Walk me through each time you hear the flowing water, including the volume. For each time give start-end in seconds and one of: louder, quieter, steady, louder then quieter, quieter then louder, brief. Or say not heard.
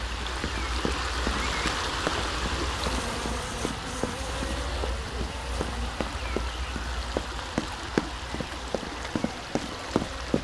0.0-10.3 quieter.